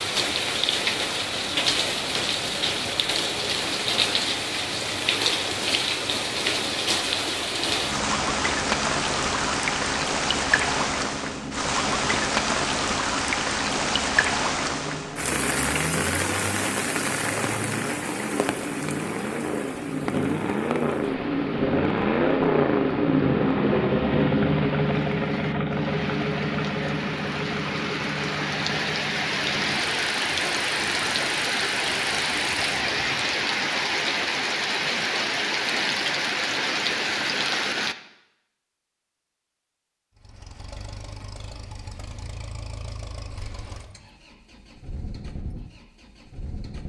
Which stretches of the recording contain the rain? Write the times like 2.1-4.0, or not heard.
0.0-38.0.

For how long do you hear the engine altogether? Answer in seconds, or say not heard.
40 s.